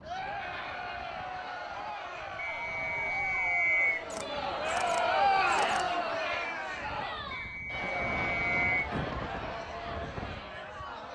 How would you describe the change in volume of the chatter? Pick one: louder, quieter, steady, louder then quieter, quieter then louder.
louder then quieter.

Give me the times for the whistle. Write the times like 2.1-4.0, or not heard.
2.4-4.0, 7.3-8.9.